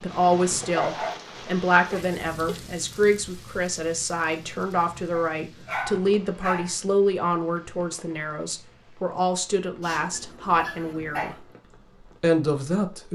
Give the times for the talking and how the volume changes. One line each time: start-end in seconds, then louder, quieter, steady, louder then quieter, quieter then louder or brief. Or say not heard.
0.0-11.3 steady
12.0-13.0 brief.